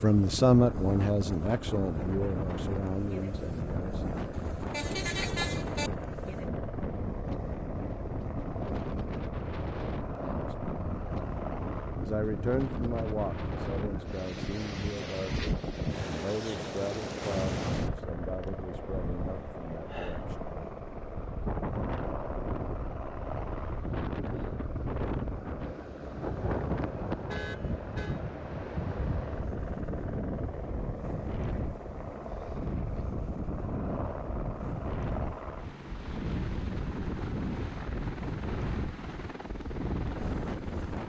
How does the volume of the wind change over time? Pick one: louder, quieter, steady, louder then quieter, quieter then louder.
steady.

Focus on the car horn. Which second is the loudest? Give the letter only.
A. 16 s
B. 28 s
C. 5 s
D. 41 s
C.